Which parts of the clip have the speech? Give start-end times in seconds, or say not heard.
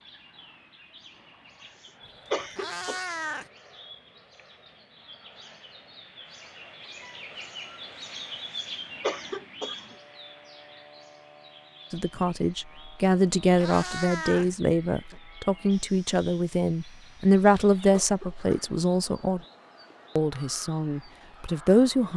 11.9-19.4, 20.1-22.1.